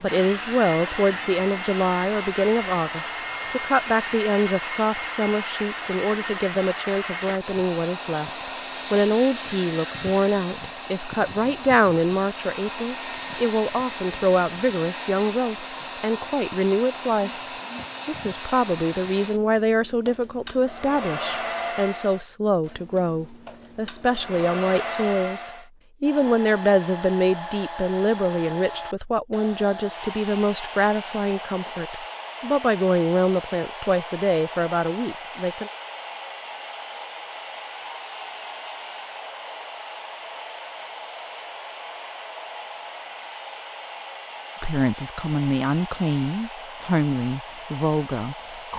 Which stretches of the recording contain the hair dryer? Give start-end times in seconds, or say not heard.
0.0-48.7.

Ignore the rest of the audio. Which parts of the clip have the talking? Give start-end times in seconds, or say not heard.
0.0-17.3, 18.1-35.7, 44.6-48.7.